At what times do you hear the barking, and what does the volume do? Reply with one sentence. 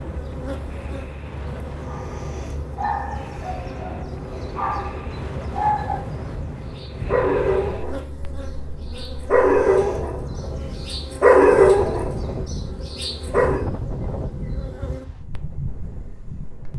You can hear the barking from 1.9 to 13.7 s, getting louder.